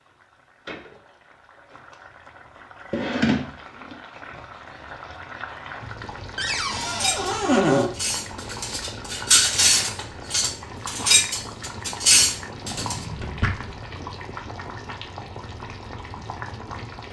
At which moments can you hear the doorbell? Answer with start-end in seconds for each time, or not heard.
not heard.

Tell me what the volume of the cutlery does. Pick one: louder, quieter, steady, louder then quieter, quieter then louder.
louder.